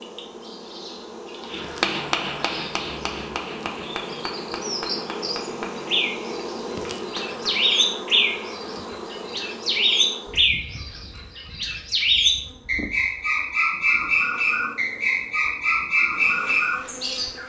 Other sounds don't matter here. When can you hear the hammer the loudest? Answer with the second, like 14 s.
2 s.